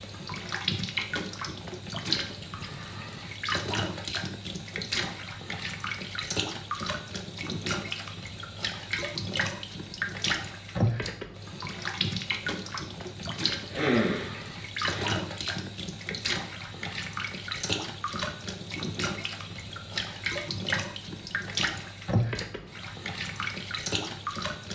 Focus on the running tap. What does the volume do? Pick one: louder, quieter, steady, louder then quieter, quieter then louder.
steady.